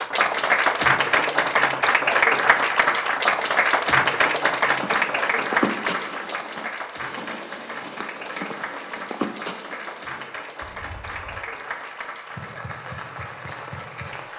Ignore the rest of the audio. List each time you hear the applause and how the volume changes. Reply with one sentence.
The applause can be heard from 0.0 to 14.3 s, getting quieter.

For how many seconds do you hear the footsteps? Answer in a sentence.
You can hear the footsteps for 7 seconds altogether.